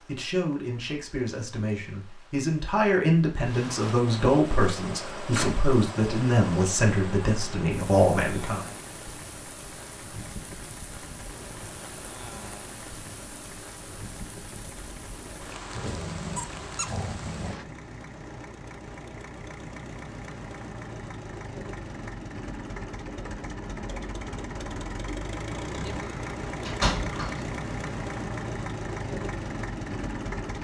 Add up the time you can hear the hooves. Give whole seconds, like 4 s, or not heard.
not heard.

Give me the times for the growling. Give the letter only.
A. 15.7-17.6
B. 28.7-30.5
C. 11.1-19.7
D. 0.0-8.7
A.